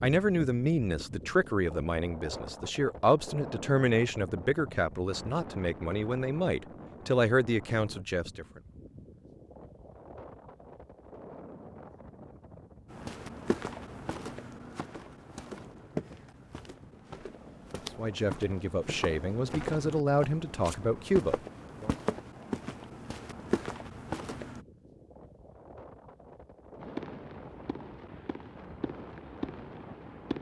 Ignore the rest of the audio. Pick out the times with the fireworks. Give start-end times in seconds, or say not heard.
26.8-30.3.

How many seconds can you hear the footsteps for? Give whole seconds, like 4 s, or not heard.
12 s.